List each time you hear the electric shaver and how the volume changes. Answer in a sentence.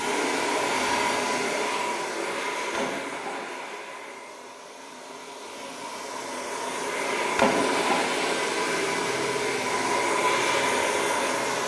The electric shaver can't be heard in this clip.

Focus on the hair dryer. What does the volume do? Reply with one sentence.
The volume of the hair dryer goes down, then up.